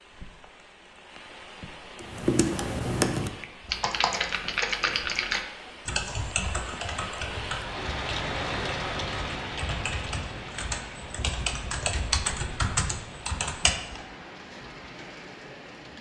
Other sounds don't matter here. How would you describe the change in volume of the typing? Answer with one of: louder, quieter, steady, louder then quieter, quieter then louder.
quieter then louder.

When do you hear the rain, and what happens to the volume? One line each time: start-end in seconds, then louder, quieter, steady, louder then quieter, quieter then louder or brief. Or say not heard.
0.0-15.9 louder then quieter.